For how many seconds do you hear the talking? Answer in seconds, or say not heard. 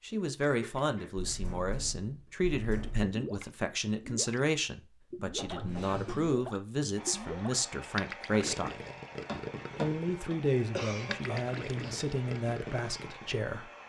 13 s.